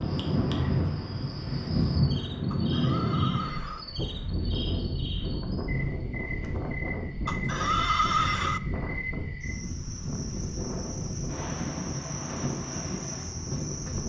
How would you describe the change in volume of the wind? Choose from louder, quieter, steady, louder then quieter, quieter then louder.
quieter.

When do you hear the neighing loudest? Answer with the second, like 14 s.
8 s.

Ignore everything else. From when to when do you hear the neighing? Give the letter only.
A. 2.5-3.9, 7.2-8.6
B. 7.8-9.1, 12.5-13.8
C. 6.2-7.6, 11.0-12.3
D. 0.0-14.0
A.